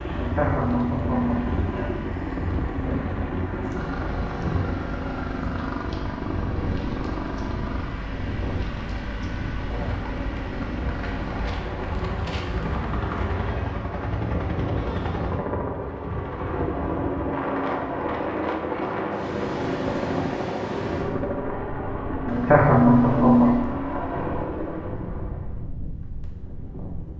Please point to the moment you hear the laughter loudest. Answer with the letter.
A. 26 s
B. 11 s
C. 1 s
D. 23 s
D.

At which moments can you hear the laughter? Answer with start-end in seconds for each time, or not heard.
0.1-2.1, 22.2-23.6.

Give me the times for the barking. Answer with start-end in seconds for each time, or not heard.
not heard.